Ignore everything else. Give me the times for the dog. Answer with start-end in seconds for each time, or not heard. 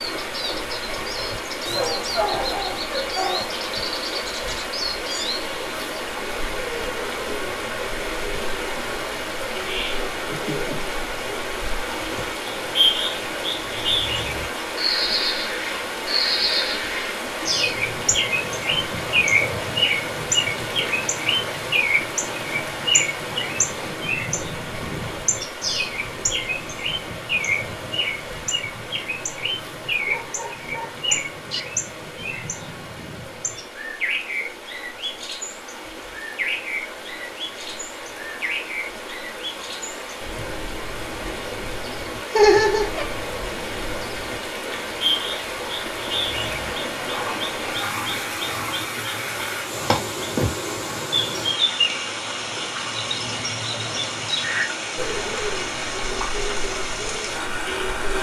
1.6-3.5, 30.1-31.6.